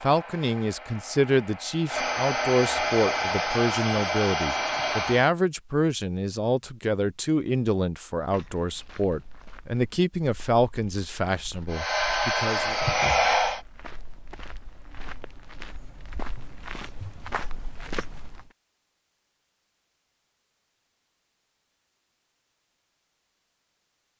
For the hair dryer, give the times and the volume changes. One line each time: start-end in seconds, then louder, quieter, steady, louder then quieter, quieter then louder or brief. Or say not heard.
0.0-5.3 louder
11.7-13.6 brief.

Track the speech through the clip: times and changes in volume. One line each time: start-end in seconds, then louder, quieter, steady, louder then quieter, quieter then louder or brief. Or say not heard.
0.0-12.8 steady.